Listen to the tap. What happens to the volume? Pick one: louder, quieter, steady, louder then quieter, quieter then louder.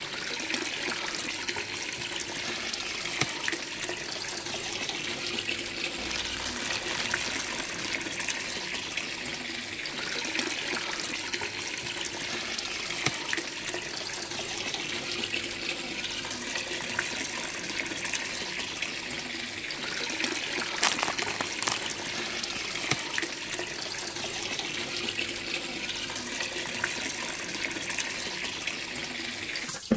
steady.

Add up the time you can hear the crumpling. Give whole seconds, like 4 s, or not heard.
4 s.